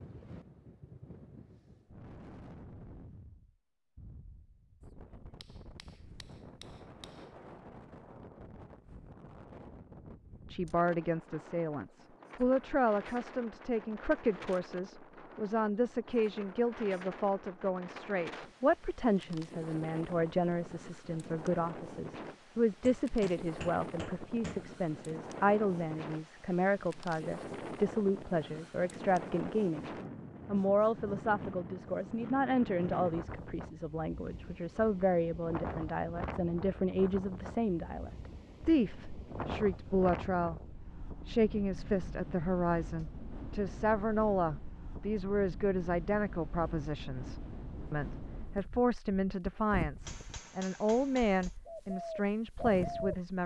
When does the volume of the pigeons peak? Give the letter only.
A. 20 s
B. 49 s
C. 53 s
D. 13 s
C.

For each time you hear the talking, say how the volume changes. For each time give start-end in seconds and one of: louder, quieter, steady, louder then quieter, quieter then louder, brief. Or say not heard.
10.5-53.4 steady.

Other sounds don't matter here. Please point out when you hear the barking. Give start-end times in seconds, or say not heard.
not heard.